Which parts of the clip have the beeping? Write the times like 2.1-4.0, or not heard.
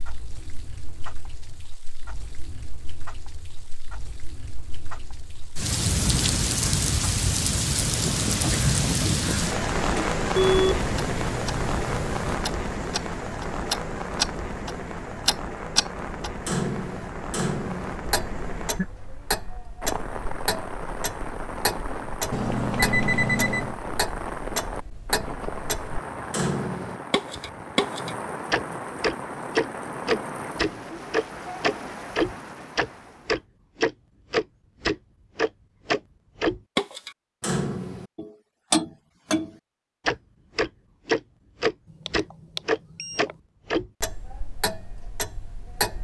10.3-12.3, 22.3-23.8, 41.9-43.4.